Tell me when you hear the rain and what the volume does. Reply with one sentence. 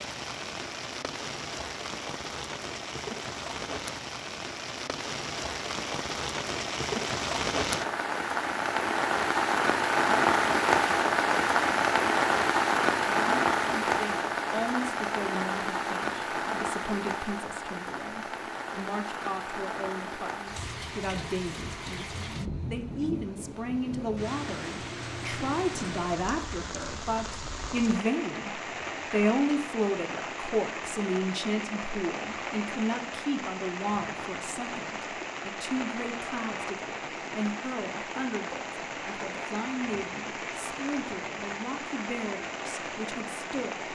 You can hear the rain from 0.0 to 43.9 s, getting louder then quieter.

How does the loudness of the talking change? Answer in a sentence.
The volume of the talking goes up, then down.